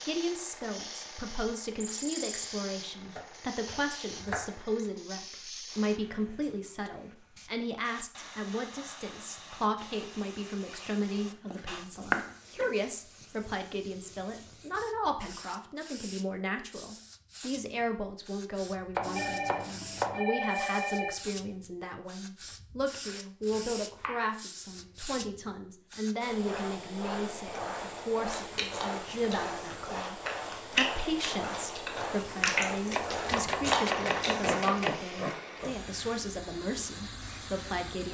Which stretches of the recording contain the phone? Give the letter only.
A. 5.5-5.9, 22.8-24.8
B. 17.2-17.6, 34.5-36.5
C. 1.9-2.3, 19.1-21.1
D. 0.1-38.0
C.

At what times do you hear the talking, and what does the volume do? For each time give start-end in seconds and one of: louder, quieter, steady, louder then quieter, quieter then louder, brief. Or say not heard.
0.1-38.0 steady.